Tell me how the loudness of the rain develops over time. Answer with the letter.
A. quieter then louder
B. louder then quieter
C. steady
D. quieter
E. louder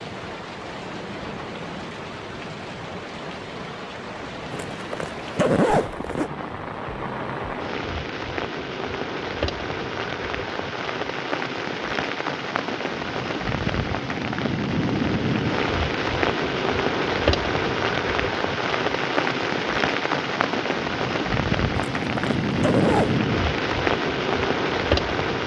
E.